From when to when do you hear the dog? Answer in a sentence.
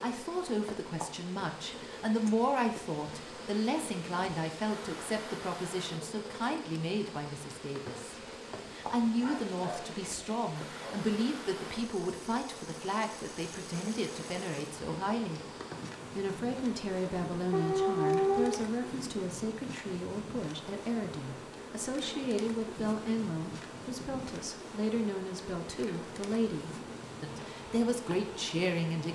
You can hear the dog from 9.2 to 11.1 s and from 17.5 to 18.6 s.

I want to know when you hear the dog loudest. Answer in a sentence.
The loudest moment of the dog is at 18 seconds.